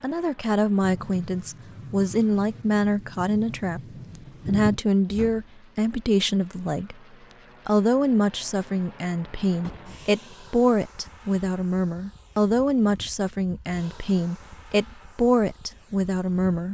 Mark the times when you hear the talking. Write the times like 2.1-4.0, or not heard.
0.0-3.8, 4.5-7.0, 7.7-16.6.